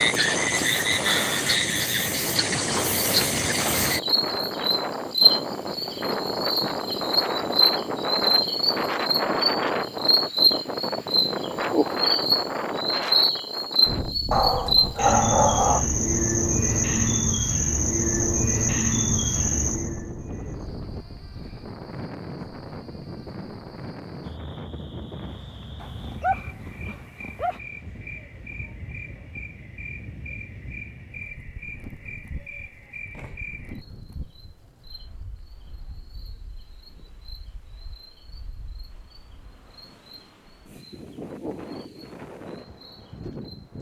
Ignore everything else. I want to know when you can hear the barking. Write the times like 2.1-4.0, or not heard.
14.3-15.8, 25.8-27.6.